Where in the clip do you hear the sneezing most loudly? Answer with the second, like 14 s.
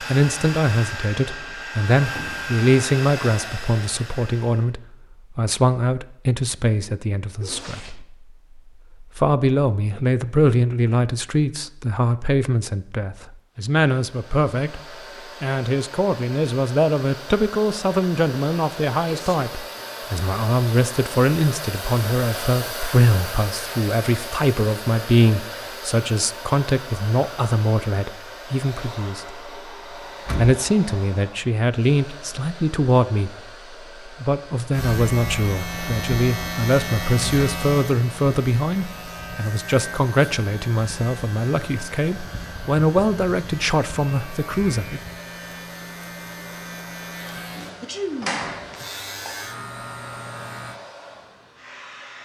48 s.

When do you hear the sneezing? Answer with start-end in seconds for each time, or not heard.
7.3-8.1, 19.1-19.6, 47.4-48.9.